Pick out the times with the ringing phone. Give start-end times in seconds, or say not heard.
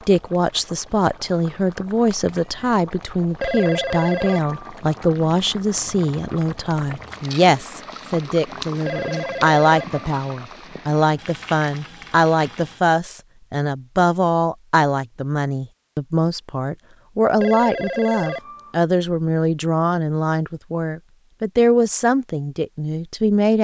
3.4-4.8, 8.8-10.1, 17.4-18.8.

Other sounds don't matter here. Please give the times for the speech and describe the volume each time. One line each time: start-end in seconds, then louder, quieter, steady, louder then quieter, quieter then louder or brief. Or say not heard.
0.1-23.5 steady.